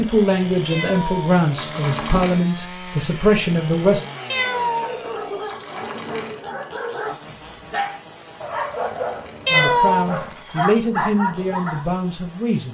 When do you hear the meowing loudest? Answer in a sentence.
The loudest moment of the meowing is at 10 seconds.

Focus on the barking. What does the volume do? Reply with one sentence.
The loudness of the barking goes up.